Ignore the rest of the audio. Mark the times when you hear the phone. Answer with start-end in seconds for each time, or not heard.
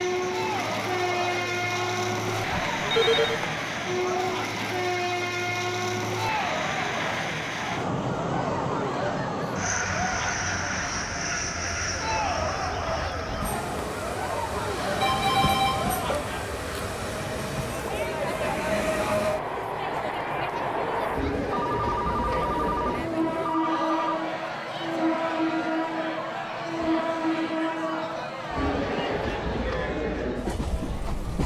2.4-3.5, 15.0-16.3, 21.5-24.2.